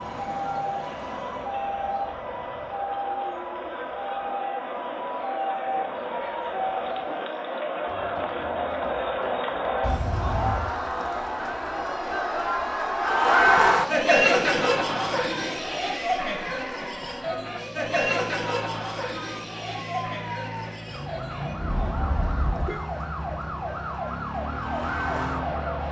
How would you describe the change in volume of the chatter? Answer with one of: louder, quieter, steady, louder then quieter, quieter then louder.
louder then quieter.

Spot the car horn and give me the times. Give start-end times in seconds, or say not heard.
9.8-10.8, 21.6-22.9.